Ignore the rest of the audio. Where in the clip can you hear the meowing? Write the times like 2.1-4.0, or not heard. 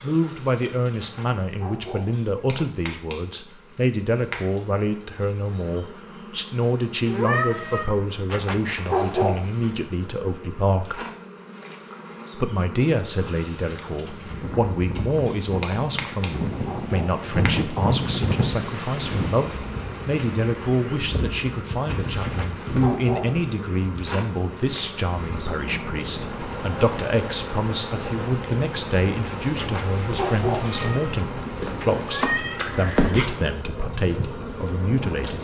7.0-7.9, 30.7-33.1.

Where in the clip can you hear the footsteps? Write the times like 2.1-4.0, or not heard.
not heard.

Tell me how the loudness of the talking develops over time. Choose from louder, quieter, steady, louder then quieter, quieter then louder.
steady.